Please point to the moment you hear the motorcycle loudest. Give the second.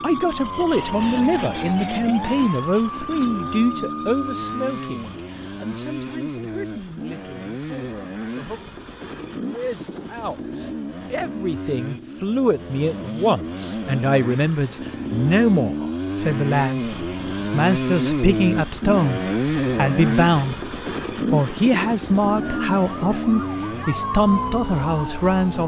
20 s.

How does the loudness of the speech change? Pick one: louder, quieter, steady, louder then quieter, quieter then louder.
quieter then louder.